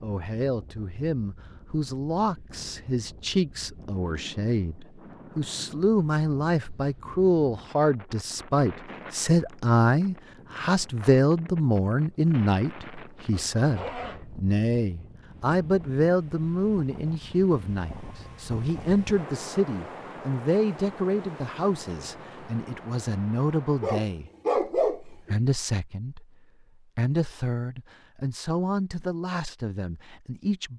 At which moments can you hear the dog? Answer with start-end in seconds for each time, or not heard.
23.8-25.4.